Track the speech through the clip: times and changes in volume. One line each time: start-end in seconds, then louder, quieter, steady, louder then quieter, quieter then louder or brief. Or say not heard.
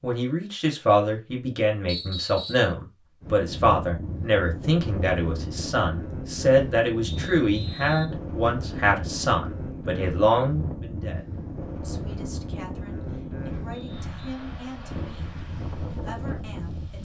0.0-17.0 quieter.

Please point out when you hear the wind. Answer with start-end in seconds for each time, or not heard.
3.2-17.0.